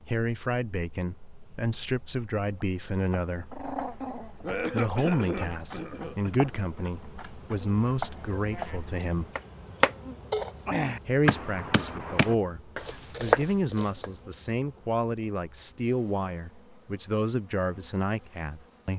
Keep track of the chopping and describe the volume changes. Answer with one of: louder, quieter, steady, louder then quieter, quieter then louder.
louder.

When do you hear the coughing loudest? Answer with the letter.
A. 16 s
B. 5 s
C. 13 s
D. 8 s
B.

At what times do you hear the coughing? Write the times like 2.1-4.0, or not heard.
4.4-6.5.